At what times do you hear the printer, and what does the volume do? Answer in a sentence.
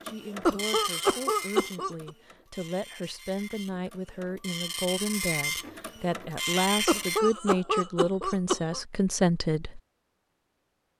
The printer can be heard from 0.0 to 7.2 s, getting quieter then louder.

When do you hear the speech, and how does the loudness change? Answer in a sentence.
The speech can be heard from 0.0 to 9.8 s, getting louder.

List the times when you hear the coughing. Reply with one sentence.
The coughing can be heard from 0.5 to 2.1 s and from 6.8 to 8.8 s.